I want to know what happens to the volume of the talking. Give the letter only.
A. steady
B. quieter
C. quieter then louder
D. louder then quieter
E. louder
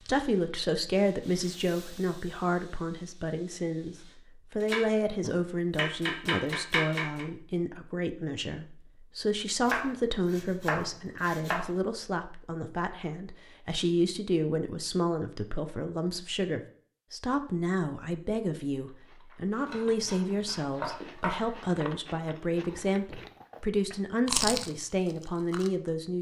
A.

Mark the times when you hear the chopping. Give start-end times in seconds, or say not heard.
4.6-7.2, 9.7-11.7, 19.6-21.6.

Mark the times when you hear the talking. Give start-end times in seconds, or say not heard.
0.1-26.1.